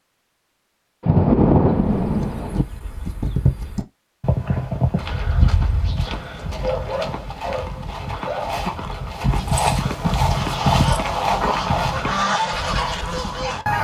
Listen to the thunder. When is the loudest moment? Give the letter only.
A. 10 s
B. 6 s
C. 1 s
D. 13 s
C.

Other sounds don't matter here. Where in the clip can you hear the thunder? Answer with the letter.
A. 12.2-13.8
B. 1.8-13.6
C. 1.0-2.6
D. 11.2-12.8
C.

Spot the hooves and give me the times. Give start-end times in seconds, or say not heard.
1.8-13.6.